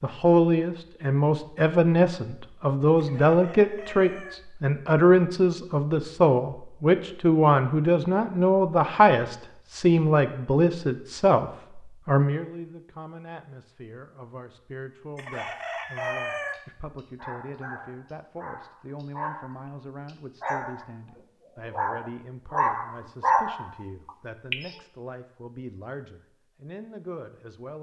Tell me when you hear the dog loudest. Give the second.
23 s.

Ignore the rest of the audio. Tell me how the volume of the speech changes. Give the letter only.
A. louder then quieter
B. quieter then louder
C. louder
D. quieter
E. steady
D.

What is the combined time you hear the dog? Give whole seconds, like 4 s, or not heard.
9 s.